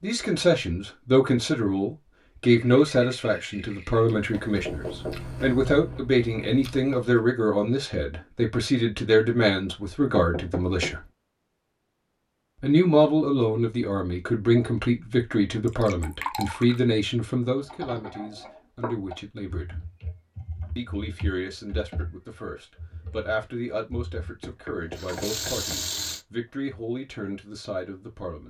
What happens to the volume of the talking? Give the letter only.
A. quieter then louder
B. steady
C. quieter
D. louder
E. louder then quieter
C.